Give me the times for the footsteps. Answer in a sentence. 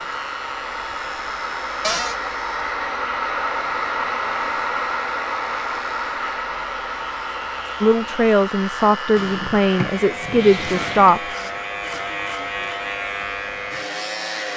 The footsteps can't be heard in this clip.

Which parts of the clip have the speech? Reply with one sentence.
The speech can be heard from 7.8 to 11.2 s.